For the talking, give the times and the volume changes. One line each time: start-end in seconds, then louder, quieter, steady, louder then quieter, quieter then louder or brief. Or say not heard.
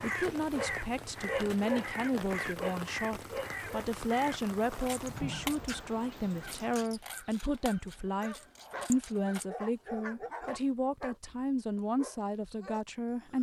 0.0-13.3 steady.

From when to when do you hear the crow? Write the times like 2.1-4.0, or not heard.
0.0-9.4.